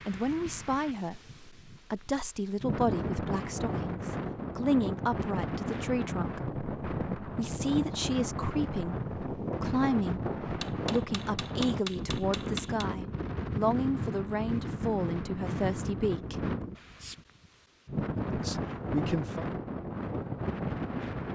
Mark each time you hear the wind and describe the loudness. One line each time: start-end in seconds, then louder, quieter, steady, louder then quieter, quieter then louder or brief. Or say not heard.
0.0-21.2 steady.